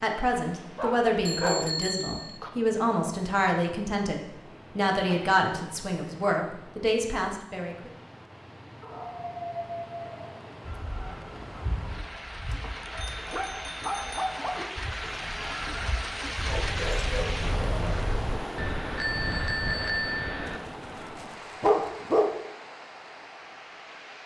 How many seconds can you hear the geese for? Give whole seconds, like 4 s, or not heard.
6 s.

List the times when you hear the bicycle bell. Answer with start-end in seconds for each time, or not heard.
1.2-2.4, 13.1-14.3, 18.6-20.6.